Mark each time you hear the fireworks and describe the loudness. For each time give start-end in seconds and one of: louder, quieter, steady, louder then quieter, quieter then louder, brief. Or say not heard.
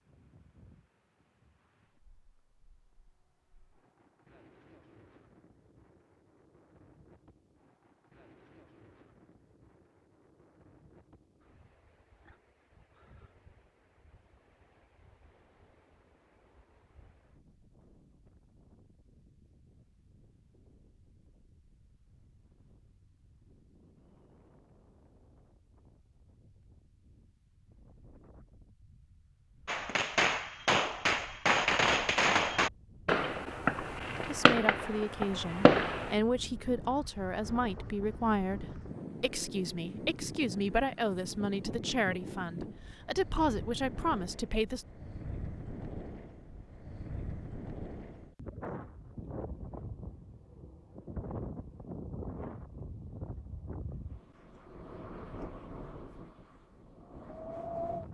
29.6-36.1 steady.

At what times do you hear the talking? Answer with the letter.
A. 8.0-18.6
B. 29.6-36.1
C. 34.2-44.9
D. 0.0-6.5
C.